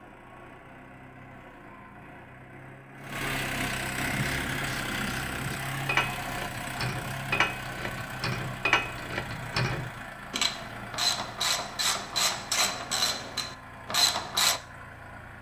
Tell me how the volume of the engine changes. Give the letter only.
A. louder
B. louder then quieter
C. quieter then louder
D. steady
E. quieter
B.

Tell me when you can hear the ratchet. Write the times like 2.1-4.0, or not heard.
4.0-14.6.